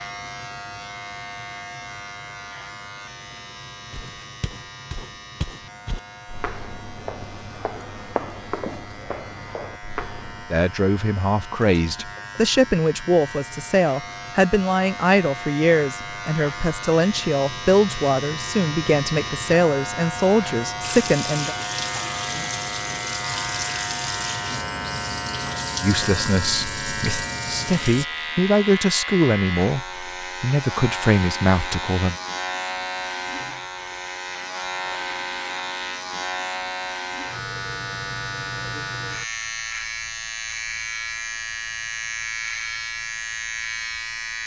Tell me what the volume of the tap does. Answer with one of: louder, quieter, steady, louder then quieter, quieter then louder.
steady.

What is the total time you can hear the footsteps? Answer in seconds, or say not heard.
7 s.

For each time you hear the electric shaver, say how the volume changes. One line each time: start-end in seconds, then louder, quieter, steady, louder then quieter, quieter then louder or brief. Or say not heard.
0.0-44.4 louder.